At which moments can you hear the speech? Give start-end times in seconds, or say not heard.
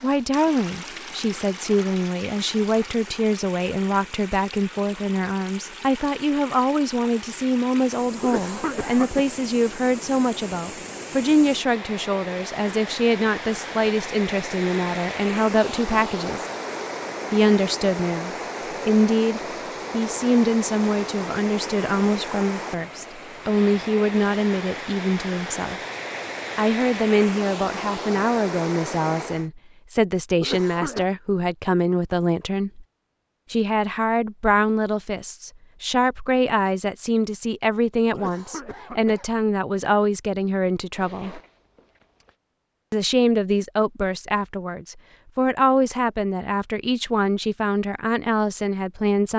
0.0-16.4, 17.3-25.8, 26.6-32.9, 33.5-41.4, 42.9-49.3.